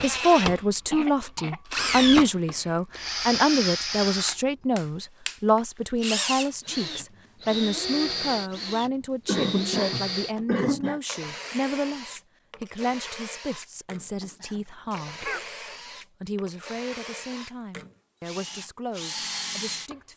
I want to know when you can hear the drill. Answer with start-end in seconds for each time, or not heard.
0.0-19.9.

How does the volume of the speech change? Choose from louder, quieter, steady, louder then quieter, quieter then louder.
quieter.